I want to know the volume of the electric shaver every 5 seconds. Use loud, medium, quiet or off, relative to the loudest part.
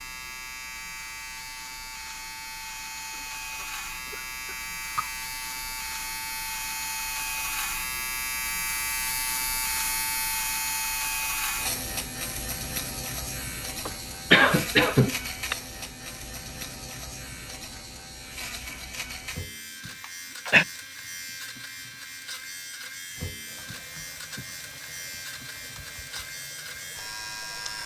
medium, loud, loud, medium, medium, medium.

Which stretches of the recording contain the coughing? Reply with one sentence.
The coughing can be heard from 3.6 to 5.1 s, from 13.8 to 15.6 s and from 20.0 to 20.6 s.